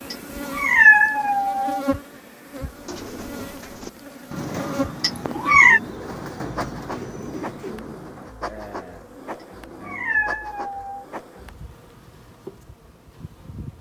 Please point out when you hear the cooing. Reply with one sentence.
You can hear the cooing from 2.5 to 10.4 s.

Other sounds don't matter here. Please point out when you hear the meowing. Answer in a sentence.
You can hear the meowing from 0.1 to 1.8 s, from 5.0 to 5.8 s and from 9.4 to 11.1 s.